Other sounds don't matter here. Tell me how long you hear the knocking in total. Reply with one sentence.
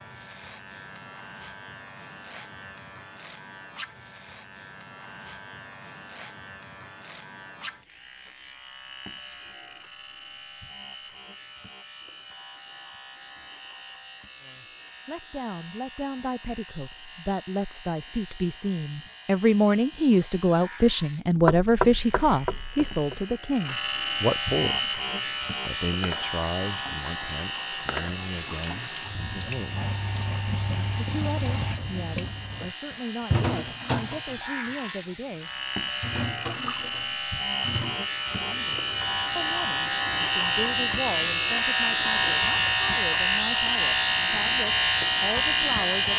The knocking can be heard for 2 seconds in total.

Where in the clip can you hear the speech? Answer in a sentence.
The speech can be heard from 14.4 to 24.9 s, from 25.6 to 29.9 s, from 30.7 to 35.5 s and from 38.5 to 46.1 s.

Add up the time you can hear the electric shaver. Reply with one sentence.
You can hear the electric shaver for 46 seconds altogether.